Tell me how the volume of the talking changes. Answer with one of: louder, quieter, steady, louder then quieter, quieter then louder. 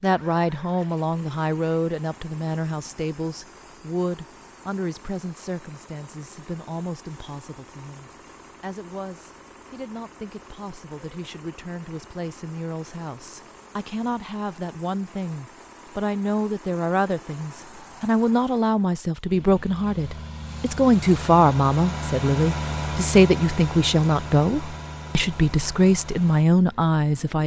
quieter then louder.